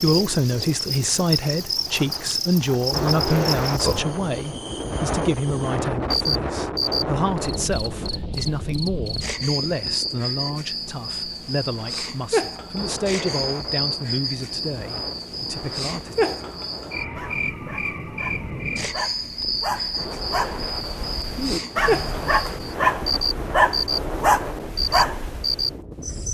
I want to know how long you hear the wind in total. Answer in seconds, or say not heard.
26 s.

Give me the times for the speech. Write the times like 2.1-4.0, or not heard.
0.0-16.1.